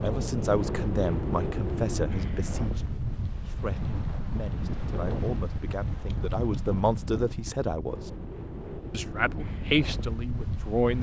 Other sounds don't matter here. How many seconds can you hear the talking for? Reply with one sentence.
The talking can be heard for 10 seconds in total.